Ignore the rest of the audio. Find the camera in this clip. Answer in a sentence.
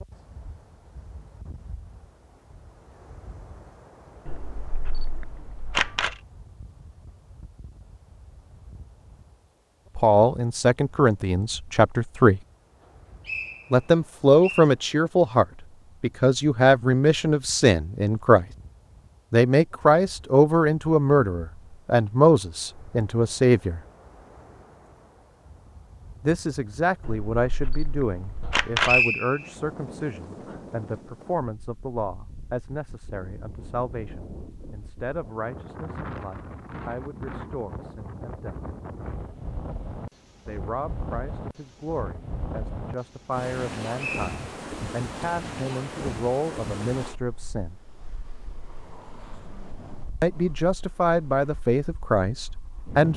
You can hear the camera from 4.2 to 6.2 s and from 27.1 to 29.1 s.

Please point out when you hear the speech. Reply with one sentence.
The speech can be heard from 9.9 to 12.4 s, from 13.7 to 18.4 s, from 19.3 to 23.8 s, from 26.2 to 38.6 s, from 40.5 to 47.8 s and from 50.2 to 53.1 s.